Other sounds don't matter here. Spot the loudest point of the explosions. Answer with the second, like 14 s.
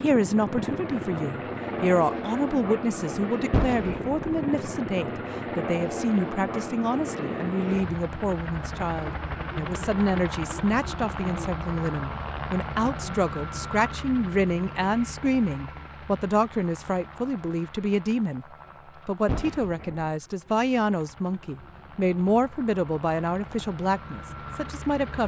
4 s.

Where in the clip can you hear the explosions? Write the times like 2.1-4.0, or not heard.
3.5-4.3, 19.2-20.1.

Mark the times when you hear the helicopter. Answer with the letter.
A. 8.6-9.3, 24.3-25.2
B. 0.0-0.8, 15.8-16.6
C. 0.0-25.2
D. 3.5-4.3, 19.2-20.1
C.